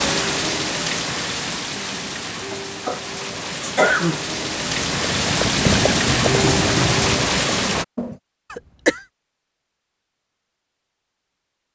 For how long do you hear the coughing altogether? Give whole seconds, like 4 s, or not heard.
2 s.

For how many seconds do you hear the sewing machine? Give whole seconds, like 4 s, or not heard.
not heard.